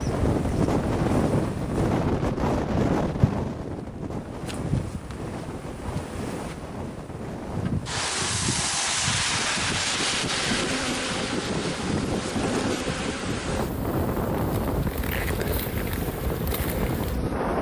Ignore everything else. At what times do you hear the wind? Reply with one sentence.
The wind can be heard from 0.0 to 17.5 s.